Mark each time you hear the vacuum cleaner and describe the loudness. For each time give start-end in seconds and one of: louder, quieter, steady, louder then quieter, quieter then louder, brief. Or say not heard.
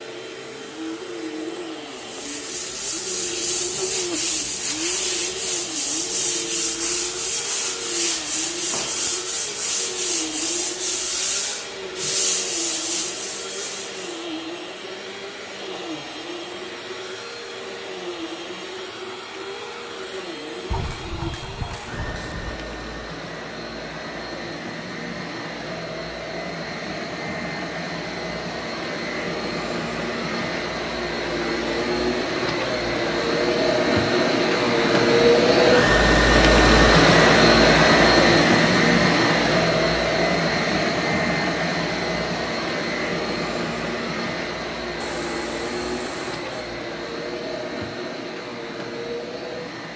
0.0-49.9 louder then quieter.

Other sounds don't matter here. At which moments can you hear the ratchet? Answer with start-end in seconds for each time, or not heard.
20.7-22.6, 45.0-46.5.